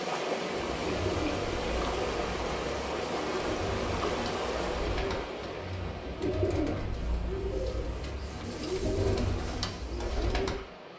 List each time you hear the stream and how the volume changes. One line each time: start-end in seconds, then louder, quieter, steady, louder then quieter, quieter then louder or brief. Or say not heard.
0.0-10.9 quieter.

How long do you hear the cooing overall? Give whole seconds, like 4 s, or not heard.
10 s.